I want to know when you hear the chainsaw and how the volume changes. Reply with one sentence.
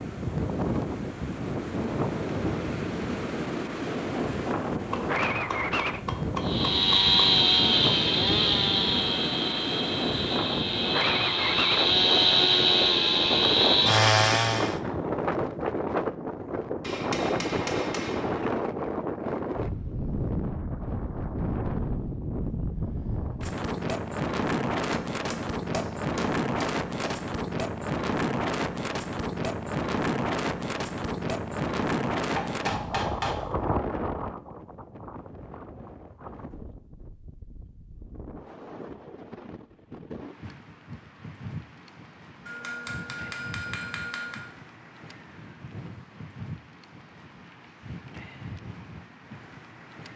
The chainsaw can be heard from 6.4 to 14.8 s, getting quieter then louder.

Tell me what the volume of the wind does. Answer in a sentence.
The loudness of the wind goes down.